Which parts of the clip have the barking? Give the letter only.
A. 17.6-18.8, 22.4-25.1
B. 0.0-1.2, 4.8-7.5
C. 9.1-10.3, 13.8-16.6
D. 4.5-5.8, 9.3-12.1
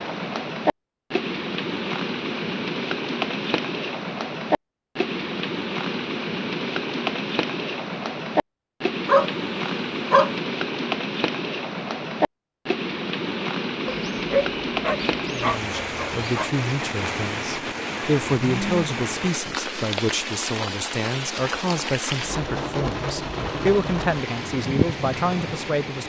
C.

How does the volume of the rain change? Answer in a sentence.
The loudness of the rain stays about the same.